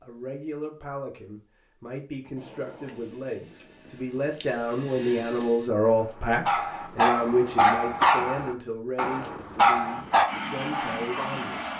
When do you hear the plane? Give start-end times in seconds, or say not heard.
2.4-5.7, 9.8-11.7.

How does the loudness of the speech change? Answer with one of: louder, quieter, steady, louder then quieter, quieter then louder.
louder then quieter.